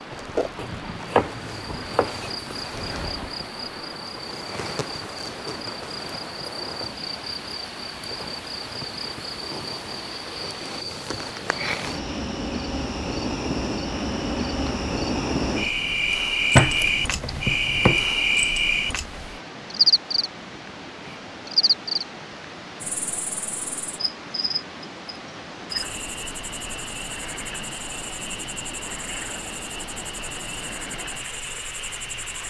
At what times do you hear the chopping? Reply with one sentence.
You can hear the chopping from 0.6 to 2.3 s and from 16.6 to 18.1 s.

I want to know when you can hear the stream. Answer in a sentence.
You can hear the stream from 0.0 to 32.4 s.